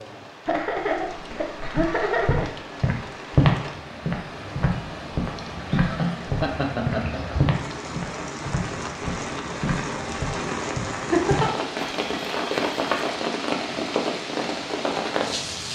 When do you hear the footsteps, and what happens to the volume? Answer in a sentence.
The footsteps can be heard from 1.8 to 13.1 s, getting quieter.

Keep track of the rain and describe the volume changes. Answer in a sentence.
The volume of the rain goes up.